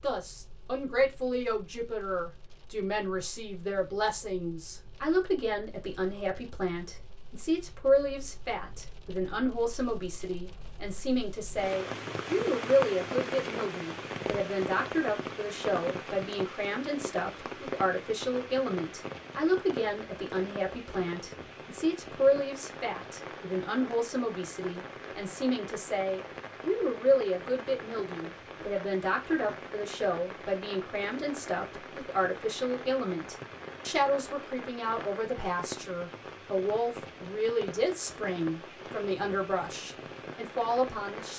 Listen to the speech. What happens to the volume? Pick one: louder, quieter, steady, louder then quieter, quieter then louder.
steady.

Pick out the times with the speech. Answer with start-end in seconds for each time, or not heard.
0.0-41.3.